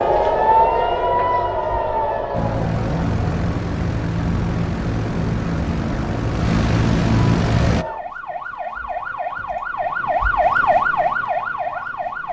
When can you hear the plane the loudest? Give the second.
7 s.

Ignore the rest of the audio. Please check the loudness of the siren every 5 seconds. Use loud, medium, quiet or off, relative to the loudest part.
loud, medium, loud.